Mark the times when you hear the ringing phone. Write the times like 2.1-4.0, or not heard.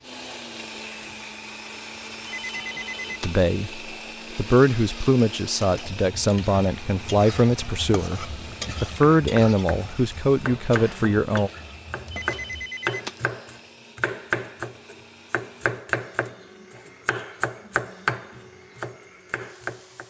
2.2-3.5, 12.1-13.3.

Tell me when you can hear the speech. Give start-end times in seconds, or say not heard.
3.2-11.5.